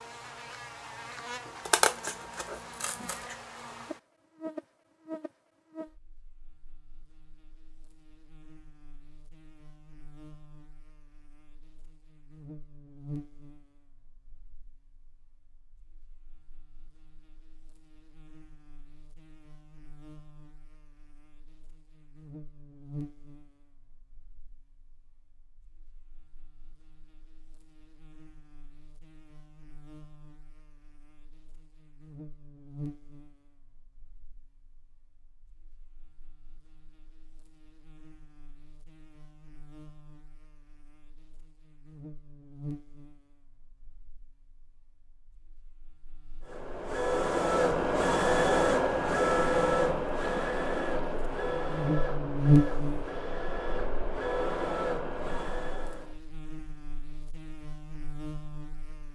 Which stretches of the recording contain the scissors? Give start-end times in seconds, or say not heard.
1.6-3.4.